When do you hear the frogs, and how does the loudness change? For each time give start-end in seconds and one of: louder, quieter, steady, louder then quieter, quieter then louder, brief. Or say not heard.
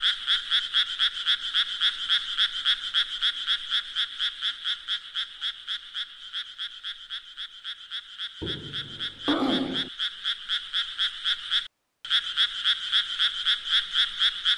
0.0-14.5 quieter then louder.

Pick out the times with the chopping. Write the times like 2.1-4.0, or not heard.
not heard.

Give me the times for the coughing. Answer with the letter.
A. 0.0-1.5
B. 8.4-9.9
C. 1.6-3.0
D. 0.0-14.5
B.